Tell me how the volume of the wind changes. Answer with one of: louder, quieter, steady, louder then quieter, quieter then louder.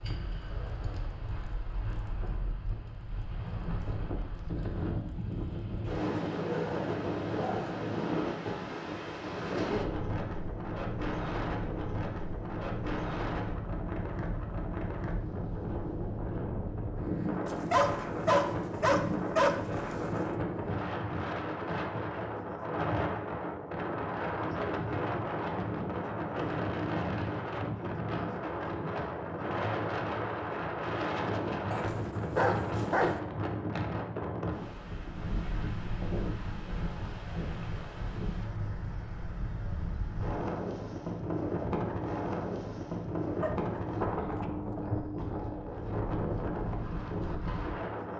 steady.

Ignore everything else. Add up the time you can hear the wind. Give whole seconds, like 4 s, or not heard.
48 s.